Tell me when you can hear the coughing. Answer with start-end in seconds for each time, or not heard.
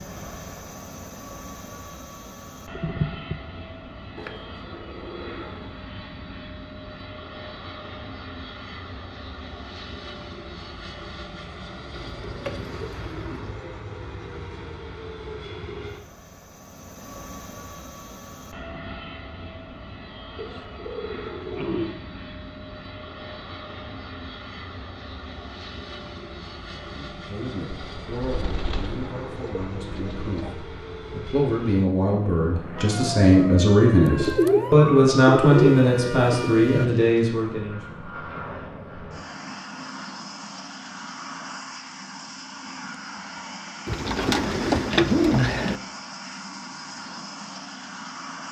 2.8-3.4.